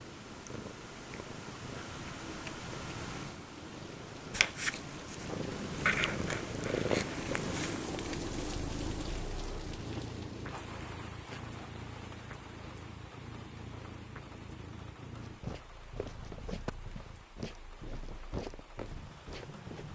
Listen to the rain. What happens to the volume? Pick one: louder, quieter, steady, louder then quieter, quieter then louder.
louder then quieter.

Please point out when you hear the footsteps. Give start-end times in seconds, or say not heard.
15.2-19.9.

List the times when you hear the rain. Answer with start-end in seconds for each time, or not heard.
0.0-19.9.